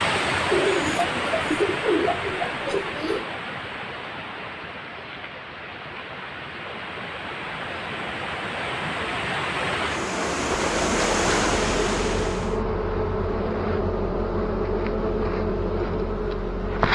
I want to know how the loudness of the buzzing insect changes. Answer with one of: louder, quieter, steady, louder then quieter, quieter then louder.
steady.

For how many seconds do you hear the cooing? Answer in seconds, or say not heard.
3 s.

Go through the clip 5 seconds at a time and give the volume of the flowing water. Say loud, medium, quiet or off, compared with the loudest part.
loud, medium, loud, off.